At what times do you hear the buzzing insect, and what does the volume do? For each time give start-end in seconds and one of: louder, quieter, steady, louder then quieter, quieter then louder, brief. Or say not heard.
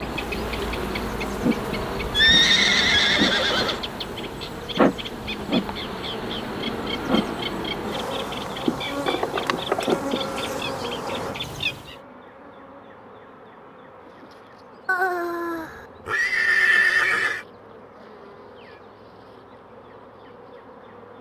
0.0-21.1 quieter.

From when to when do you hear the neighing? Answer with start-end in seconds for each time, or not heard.
2.1-3.8, 14.8-17.4.